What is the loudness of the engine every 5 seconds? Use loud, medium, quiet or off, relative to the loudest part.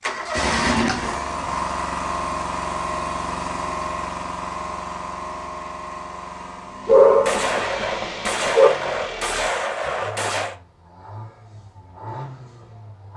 loud, medium, quiet.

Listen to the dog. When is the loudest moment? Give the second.
7 s.